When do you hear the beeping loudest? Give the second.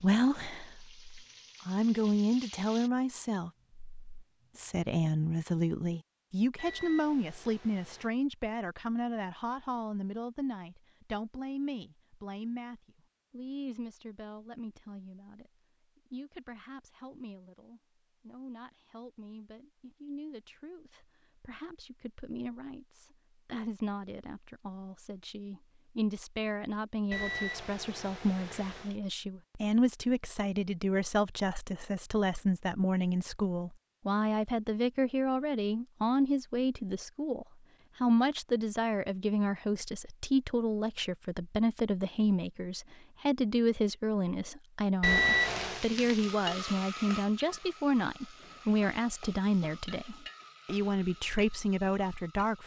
45 s.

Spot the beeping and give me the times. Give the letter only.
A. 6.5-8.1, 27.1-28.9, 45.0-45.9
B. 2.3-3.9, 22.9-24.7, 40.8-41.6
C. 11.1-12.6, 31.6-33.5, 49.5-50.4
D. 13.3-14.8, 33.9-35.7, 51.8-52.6
A.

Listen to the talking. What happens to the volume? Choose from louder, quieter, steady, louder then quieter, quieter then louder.
quieter then louder.